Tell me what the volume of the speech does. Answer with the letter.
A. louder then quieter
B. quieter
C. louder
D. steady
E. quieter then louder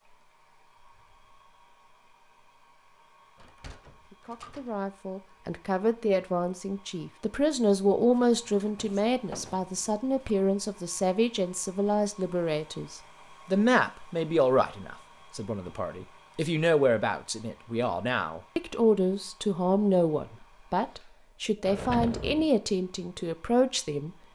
D.